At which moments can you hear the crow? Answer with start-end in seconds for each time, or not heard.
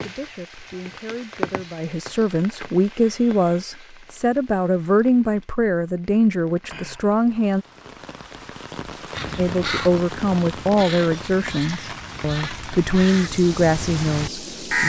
9.2-14.8.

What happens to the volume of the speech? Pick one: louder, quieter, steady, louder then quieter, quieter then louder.
louder.